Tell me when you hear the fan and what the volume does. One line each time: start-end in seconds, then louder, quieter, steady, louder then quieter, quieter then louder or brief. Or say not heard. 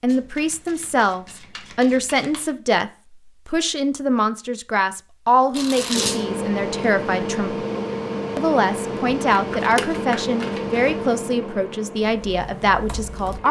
5.9-13.4 quieter.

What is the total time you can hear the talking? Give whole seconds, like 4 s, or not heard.
13 s.